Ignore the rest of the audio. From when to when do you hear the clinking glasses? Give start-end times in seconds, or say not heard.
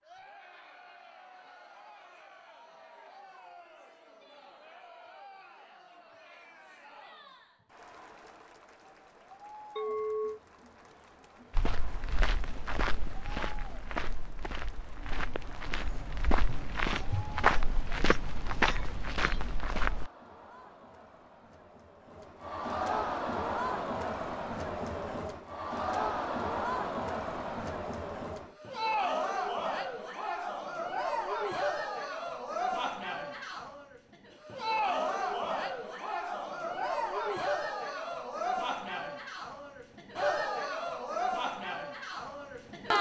9.8-10.4.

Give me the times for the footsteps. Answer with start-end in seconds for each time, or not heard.
11.6-20.1.